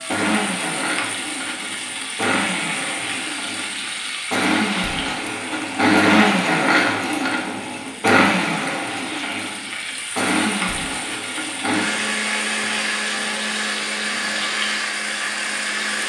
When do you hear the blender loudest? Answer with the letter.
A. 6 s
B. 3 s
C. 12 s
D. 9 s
A.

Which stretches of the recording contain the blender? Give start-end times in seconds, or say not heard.
0.0-16.0.